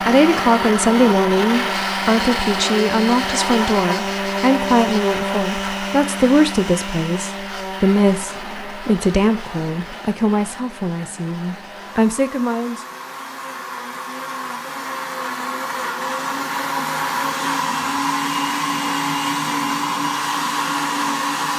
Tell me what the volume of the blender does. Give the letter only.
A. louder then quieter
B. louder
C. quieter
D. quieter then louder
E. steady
D.